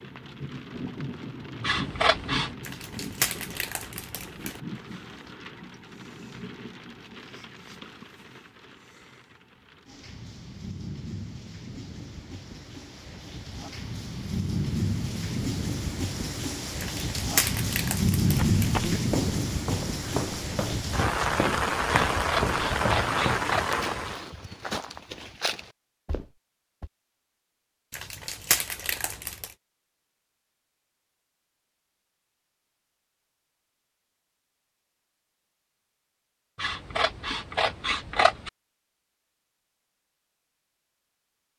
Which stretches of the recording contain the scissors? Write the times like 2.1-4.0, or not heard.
1.6-2.5, 22.1-23.6, 36.5-38.5.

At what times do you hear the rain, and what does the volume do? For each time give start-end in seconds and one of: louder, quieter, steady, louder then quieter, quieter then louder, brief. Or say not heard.
0.0-24.2 quieter then louder.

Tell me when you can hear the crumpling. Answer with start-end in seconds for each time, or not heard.
2.6-4.6, 16.8-18.8, 27.9-29.5.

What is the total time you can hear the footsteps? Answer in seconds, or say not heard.
9 s.